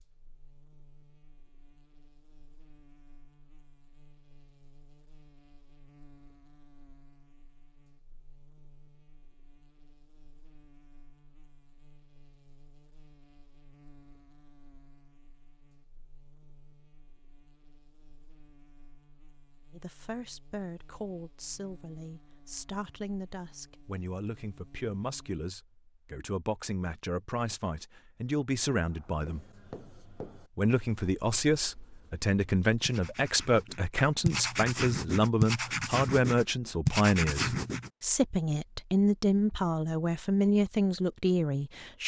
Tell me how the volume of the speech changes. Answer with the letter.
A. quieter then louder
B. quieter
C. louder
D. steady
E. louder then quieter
C.